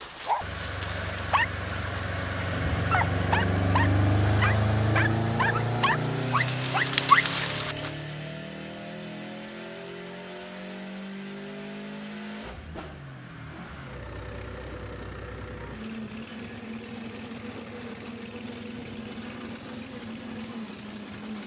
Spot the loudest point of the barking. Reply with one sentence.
The loudest moment of the barking is at 7 seconds.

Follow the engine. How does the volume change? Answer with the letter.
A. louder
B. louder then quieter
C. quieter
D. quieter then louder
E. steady
C.